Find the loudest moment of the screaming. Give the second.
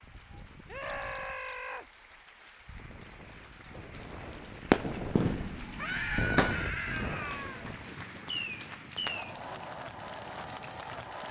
6 s.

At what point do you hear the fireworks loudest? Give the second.
5 s.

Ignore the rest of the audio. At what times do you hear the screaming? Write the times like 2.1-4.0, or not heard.
0.7-1.9, 5.8-7.7.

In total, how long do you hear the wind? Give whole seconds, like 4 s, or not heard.
11 s.